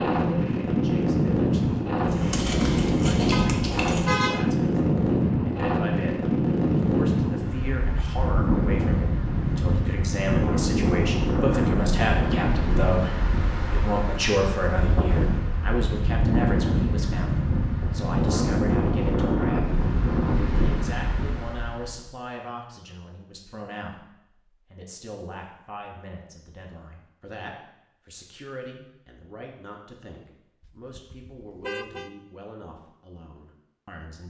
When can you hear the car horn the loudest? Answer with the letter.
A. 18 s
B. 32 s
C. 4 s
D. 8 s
C.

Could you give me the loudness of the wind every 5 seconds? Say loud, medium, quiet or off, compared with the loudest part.
loud, loud, loud, loud, medium, off, off.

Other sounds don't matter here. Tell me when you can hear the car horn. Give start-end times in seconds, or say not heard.
3.3-4.5, 30.6-32.1.